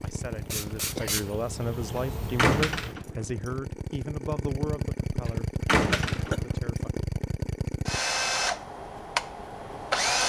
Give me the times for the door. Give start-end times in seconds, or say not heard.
2.4-3.1, 5.7-6.5.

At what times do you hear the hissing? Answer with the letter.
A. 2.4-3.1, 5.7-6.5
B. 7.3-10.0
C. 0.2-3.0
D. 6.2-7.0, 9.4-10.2
C.